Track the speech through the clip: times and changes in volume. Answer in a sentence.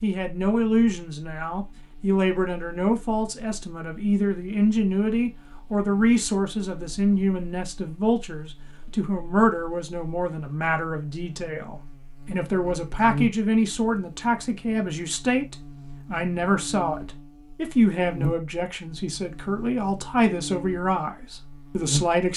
You can hear the speech from 0.0 to 22.3 s, at a steady volume.